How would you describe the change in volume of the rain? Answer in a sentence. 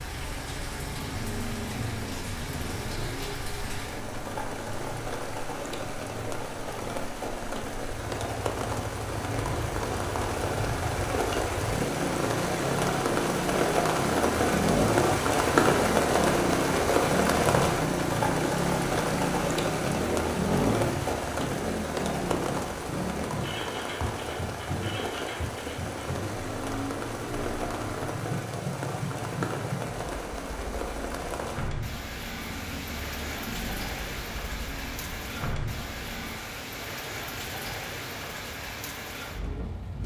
The loudness of the rain goes up, then down.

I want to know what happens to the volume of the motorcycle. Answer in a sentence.
The loudness of the motorcycle goes up, then down.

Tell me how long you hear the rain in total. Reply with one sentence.
You can hear the rain for 40 seconds altogether.